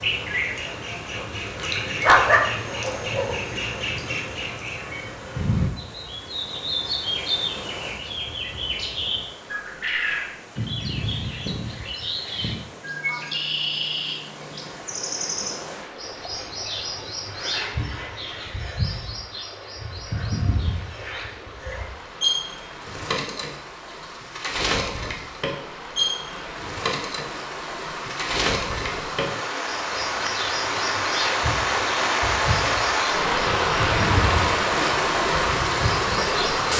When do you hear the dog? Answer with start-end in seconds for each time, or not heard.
2.0-3.4.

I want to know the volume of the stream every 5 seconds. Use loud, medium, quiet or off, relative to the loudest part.
quiet, quiet, quiet, quiet, quiet, medium, loud, loud.